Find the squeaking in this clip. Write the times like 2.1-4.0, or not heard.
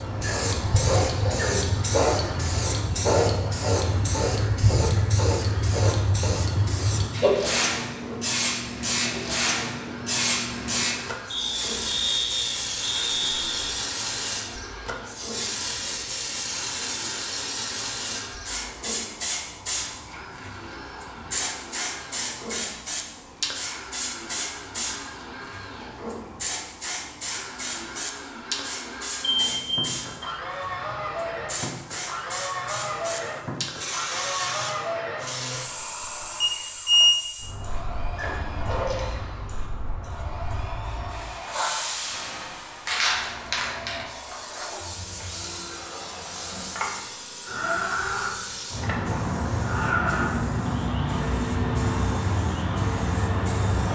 0.2-1.6, 38.1-39.1.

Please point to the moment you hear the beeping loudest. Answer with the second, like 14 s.
37 s.